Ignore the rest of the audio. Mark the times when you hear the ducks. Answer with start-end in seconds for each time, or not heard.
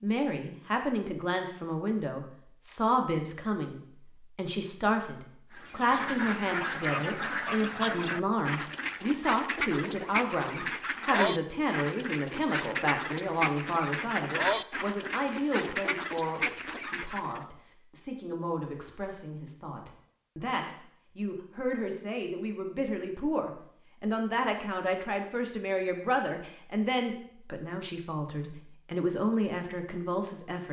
5.5-17.4.